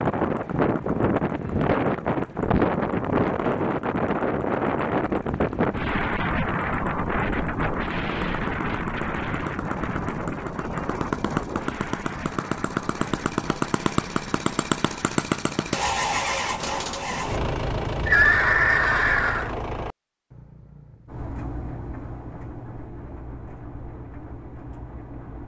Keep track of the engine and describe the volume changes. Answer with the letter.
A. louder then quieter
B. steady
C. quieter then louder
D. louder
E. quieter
A.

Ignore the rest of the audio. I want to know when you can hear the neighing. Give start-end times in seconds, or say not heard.
18.1-19.6.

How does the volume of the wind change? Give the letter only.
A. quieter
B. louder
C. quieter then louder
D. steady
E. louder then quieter
A.